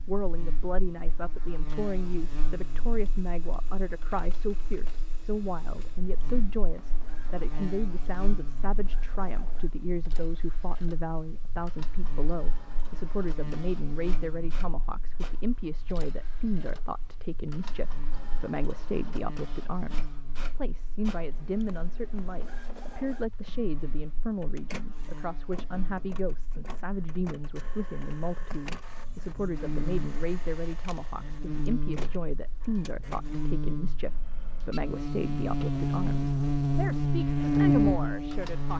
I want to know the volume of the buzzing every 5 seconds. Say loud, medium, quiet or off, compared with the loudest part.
quiet, quiet, quiet, quiet, quiet, quiet, quiet, loud.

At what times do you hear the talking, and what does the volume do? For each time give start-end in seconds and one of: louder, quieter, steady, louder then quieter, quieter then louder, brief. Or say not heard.
0.1-38.7 steady.